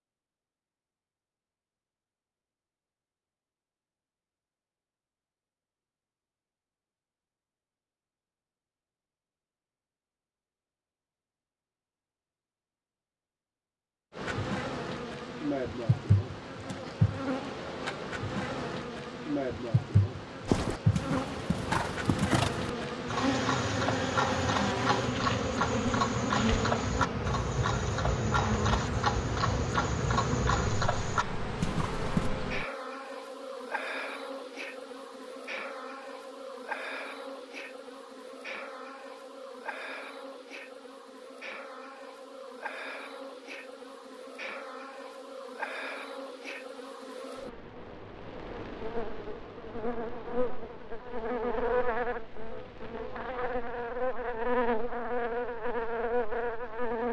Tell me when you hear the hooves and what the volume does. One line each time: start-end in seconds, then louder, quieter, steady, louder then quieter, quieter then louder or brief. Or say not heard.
20.4-32.3 steady.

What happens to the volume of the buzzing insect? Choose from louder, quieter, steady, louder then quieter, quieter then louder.
quieter then louder.